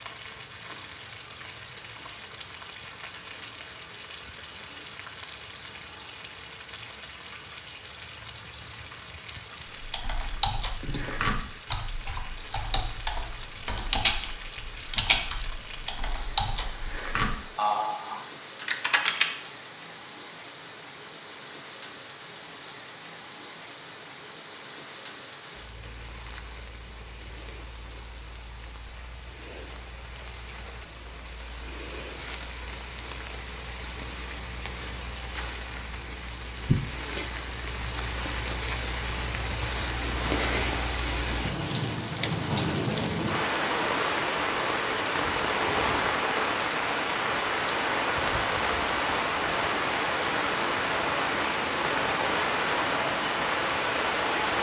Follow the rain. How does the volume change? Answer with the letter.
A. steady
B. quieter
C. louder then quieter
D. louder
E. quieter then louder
D.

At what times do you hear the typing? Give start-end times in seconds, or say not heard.
9.8-19.3.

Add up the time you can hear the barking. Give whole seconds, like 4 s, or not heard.
not heard.